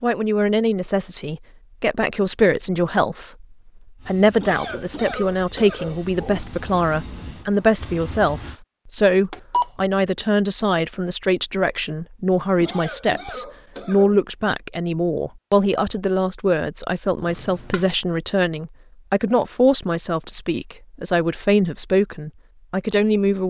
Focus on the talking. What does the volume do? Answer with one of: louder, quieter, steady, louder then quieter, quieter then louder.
steady.